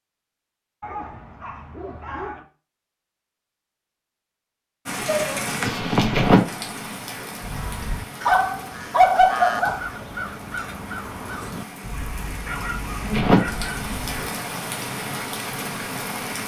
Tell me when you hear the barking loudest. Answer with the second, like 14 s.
9 s.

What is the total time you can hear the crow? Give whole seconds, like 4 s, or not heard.
7 s.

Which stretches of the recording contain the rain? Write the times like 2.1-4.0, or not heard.
4.8-16.4.